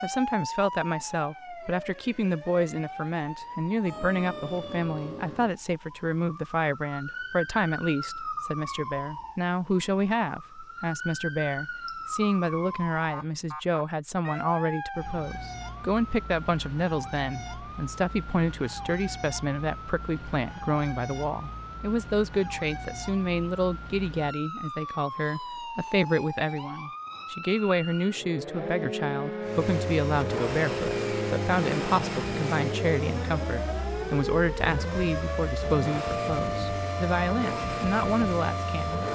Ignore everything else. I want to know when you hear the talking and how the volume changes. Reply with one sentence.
The talking can be heard from 0.0 to 39.0 s, at a steady volume.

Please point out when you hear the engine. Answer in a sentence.
The engine can be heard from 29.4 to 39.1 s.